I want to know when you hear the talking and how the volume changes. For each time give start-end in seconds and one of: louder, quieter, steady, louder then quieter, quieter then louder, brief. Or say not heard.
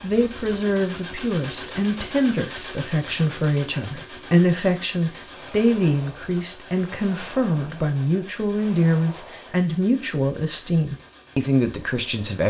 0.0-12.4 steady.